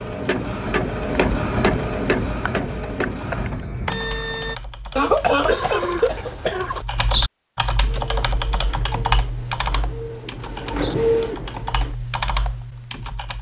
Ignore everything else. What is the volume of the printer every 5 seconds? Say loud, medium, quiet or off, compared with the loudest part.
loud, quiet, loud.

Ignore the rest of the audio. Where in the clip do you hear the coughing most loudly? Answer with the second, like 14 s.
5 s.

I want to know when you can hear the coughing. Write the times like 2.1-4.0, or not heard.
5.0-6.8.